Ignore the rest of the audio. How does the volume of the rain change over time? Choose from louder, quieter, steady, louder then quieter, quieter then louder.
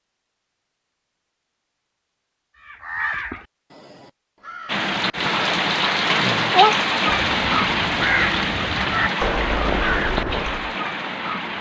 quieter.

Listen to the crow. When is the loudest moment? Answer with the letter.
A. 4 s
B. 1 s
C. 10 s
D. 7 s
D.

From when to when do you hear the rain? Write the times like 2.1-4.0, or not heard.
4.7-11.5.